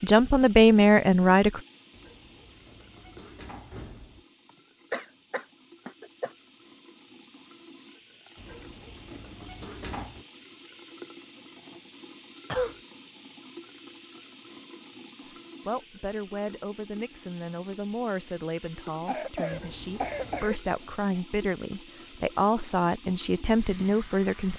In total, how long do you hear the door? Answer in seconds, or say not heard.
5 s.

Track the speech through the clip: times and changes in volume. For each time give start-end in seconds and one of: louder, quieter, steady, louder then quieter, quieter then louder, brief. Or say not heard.
0.0-1.6 brief
15.2-24.5 louder.